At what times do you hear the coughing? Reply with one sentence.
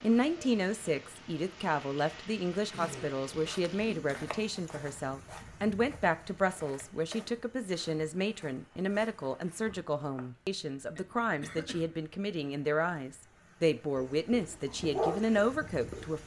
You can hear the coughing from 2.7 to 3.2 s and from 10.9 to 11.8 s.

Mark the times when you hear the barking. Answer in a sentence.
You can hear the barking from 13.9 to 16.2 s.